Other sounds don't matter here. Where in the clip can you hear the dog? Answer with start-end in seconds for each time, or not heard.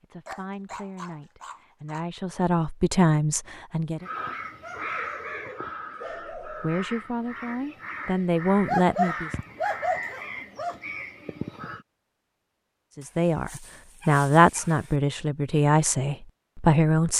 0.2-2.0, 4.6-6.8, 8.7-10.8, 13.0-14.9.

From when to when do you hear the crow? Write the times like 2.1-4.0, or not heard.
4.0-11.8.